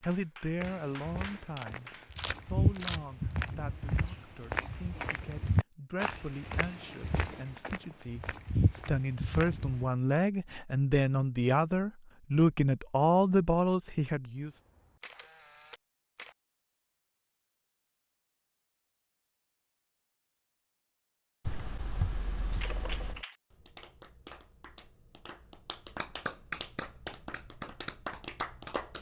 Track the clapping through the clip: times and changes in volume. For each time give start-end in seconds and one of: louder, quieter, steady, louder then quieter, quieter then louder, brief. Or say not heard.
0.0-2.2 brief
22.5-28.9 quieter then louder.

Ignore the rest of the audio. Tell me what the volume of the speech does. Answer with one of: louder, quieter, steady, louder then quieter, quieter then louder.
quieter then louder.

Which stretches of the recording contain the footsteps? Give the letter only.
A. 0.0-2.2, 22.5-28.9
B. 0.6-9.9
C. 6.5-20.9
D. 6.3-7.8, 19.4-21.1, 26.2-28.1
B.